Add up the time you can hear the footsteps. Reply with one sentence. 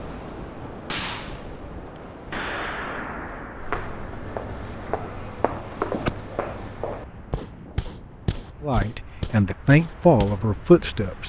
You can hear the footsteps for 7 seconds altogether.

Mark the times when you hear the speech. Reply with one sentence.
You can hear the speech from 8.6 to 11.2 s.